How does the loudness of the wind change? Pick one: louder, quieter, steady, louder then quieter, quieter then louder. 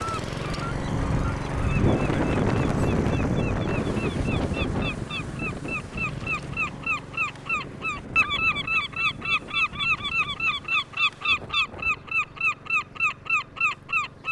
quieter.